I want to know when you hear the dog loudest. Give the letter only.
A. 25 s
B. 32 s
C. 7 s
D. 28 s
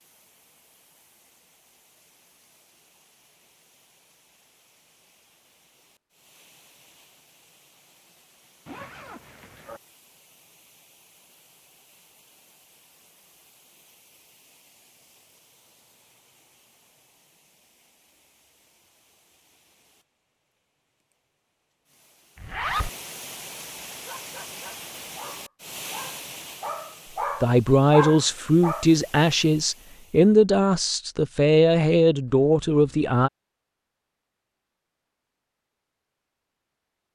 D.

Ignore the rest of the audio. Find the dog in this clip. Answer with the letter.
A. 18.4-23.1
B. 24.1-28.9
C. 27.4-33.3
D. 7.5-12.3
B.